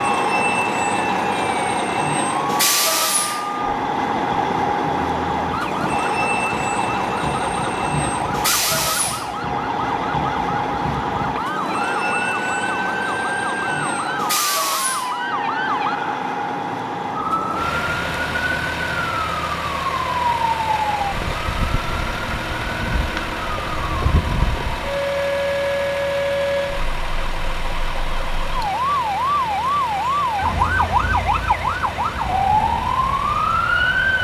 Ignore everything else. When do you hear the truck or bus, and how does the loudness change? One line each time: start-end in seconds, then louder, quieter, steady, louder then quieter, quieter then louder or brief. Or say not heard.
0.0-34.1 quieter.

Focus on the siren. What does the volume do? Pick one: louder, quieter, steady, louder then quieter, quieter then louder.
louder.